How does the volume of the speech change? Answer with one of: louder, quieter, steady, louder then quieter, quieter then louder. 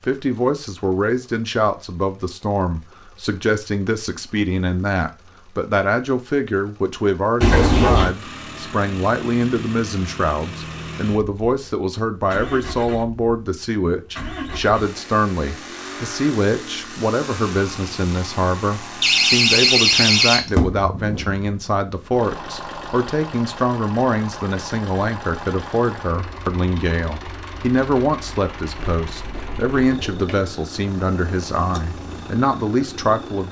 steady.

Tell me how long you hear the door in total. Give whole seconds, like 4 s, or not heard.
4 s.